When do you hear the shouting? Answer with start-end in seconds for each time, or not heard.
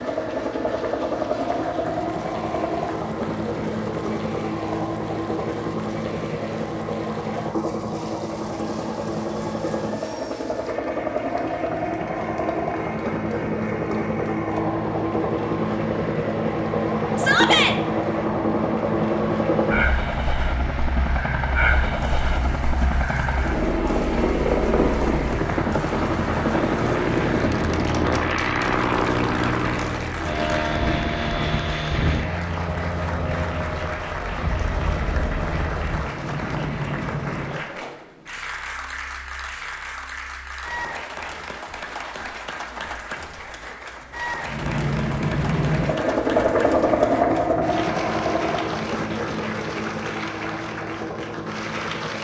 17.1-17.8.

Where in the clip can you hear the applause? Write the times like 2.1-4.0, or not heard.
0.0-52.1.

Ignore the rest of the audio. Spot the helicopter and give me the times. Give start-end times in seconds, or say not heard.
0.0-37.7, 44.4-52.1.